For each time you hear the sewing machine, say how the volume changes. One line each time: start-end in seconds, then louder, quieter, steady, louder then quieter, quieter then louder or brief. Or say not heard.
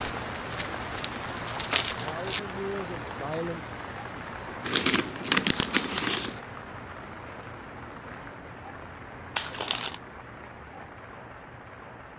not heard.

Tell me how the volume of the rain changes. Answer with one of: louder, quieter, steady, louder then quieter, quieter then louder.
quieter.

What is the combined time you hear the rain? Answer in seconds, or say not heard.
12 s.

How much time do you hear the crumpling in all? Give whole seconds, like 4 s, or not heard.
4 s.